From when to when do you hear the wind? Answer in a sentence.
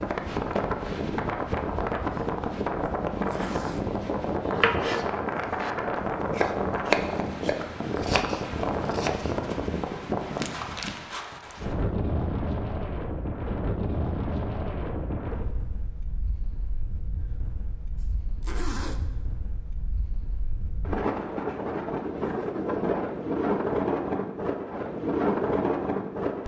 The wind can be heard from 0.0 to 26.4 s.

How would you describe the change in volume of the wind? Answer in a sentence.
The loudness of the wind goes down, then up.